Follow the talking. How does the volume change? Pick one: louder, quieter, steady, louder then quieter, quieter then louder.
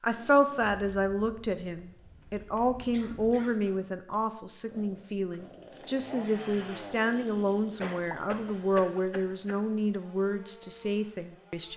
steady.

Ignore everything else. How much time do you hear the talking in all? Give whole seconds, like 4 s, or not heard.
12 s.